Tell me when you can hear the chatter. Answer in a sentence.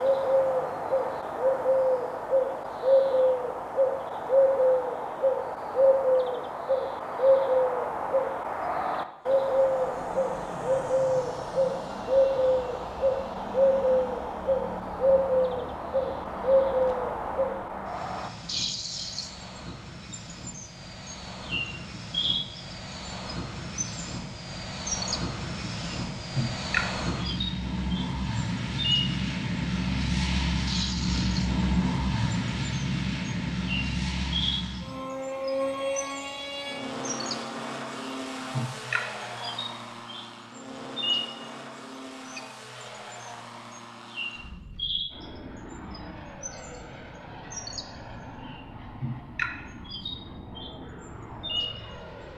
You can't hear the chatter here.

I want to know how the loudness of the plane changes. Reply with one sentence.
The loudness of the plane goes up, then down.